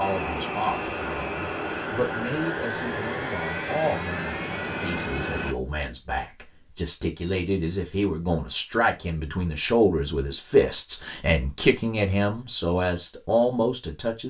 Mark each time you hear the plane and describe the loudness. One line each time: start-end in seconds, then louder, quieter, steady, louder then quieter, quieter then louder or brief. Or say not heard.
0.0-5.5 steady.